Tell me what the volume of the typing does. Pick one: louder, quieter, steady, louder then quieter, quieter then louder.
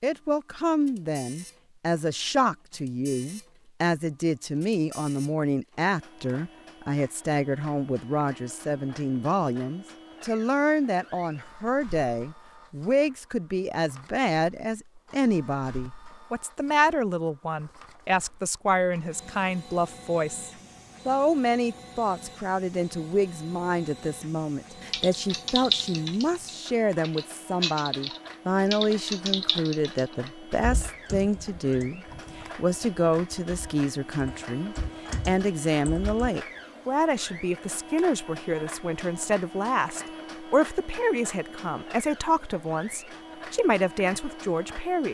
quieter then louder.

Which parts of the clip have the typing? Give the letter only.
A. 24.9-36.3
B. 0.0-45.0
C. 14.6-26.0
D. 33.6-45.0
A.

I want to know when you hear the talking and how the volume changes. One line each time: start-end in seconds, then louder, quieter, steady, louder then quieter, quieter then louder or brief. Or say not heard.
0.0-45.0 steady.